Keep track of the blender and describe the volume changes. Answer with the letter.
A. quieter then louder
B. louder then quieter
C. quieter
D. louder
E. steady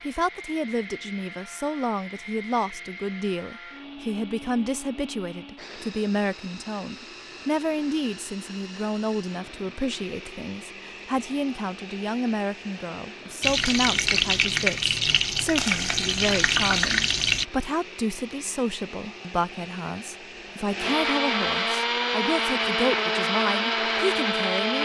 D.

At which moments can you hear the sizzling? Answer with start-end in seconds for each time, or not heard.
13.4-17.4.